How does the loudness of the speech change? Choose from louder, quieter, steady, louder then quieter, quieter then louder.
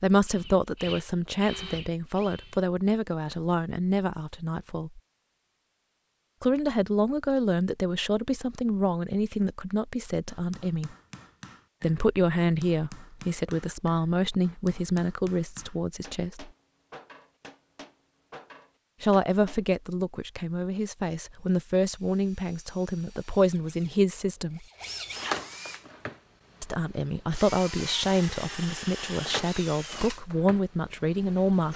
steady.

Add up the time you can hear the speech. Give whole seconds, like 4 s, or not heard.
25 s.